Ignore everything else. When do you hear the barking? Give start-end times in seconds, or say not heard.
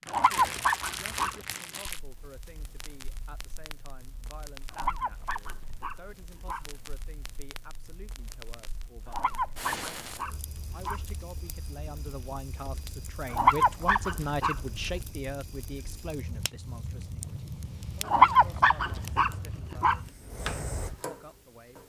0.1-1.4, 4.7-6.6, 9.1-11.0, 13.3-14.6, 18.1-19.9.